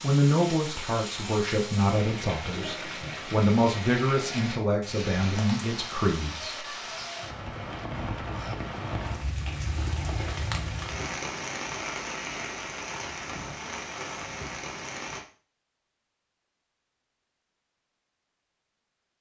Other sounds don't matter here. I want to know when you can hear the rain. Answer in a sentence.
The rain can be heard from 0.0 to 15.2 s.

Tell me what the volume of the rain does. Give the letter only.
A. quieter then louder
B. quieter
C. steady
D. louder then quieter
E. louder
C.